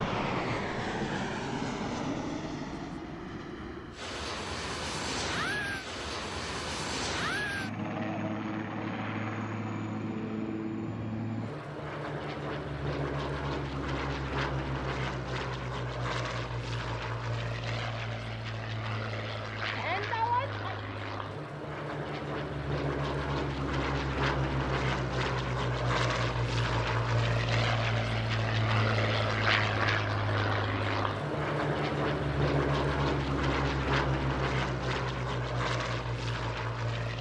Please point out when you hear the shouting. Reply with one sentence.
The shouting can be heard from 19.7 to 20.6 s.